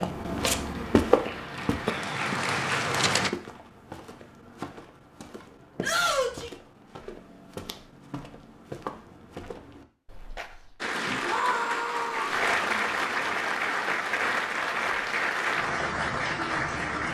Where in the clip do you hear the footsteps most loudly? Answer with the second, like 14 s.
1 s.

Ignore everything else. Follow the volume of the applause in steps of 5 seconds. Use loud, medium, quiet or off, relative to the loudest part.
loud, off, loud, loud.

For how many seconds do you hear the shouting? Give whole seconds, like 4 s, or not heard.
2 s.